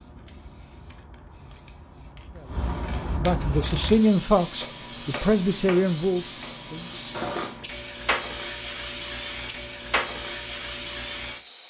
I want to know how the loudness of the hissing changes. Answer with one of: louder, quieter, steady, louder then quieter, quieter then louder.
louder.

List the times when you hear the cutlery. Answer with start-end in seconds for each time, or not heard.
7.1-7.5.